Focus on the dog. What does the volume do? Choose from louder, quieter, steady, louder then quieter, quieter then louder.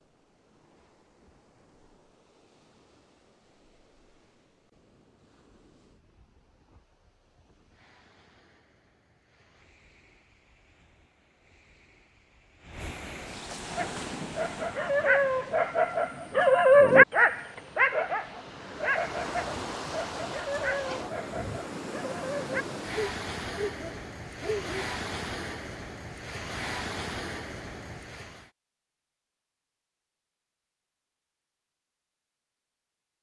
louder then quieter.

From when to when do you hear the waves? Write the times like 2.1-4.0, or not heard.
0.0-28.5.